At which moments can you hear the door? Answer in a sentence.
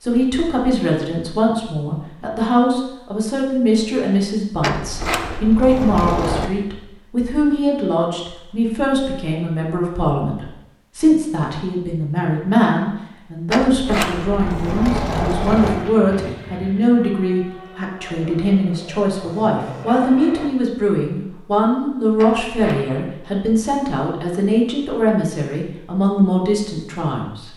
You can hear the door from 4.6 to 6.5 s, from 13.4 to 15.9 s and from 22.1 to 22.9 s.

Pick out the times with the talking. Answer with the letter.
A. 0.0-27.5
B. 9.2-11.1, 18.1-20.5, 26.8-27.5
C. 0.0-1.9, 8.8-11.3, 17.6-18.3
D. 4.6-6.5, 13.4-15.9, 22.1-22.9
A.